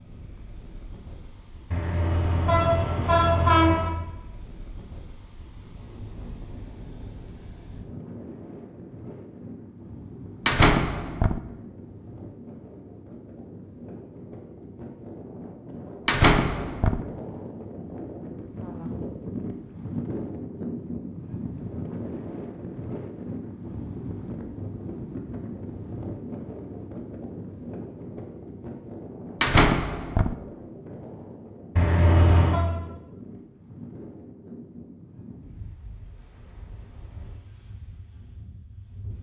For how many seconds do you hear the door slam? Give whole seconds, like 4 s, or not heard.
3 s.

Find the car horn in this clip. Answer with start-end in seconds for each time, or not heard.
1.7-3.9, 31.8-32.6.